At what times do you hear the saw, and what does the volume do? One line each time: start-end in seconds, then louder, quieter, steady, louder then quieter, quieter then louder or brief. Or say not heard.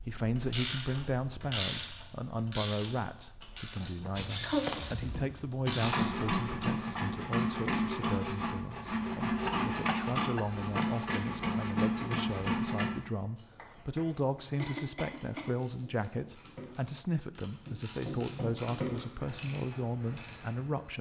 4.2-13.1 steady.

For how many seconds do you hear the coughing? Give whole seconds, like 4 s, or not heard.
3 s.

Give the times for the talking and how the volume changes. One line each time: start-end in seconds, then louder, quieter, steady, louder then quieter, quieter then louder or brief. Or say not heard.
0.1-20.9 steady.